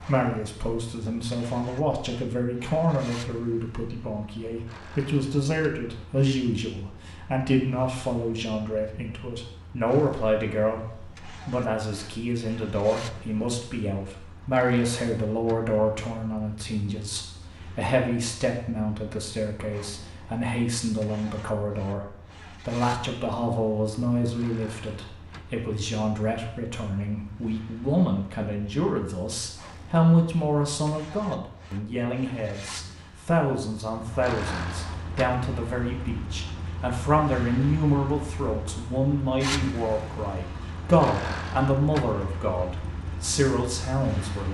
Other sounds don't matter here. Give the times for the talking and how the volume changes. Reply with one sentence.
The talking can be heard from 0.0 to 44.4 s, at a steady volume.